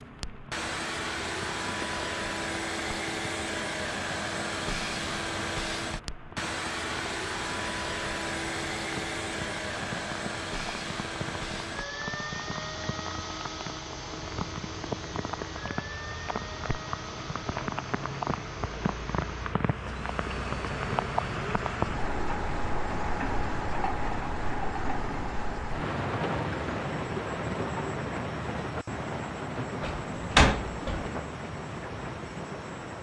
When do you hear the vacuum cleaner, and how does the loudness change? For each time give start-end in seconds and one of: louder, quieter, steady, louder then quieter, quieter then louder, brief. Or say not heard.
0.0-32.9 quieter.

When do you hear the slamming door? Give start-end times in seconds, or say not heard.
29.8-31.1.